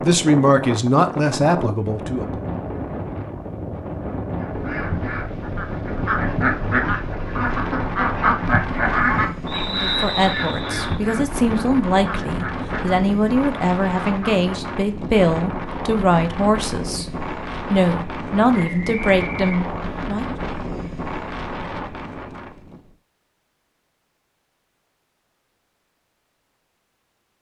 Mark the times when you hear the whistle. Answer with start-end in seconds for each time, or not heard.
9.4-10.8, 18.6-20.1.